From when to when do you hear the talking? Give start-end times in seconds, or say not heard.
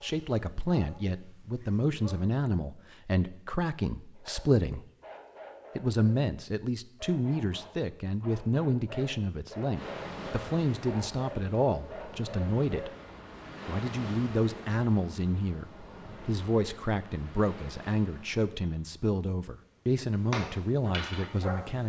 0.0-4.8, 5.8-12.9, 13.7-21.8.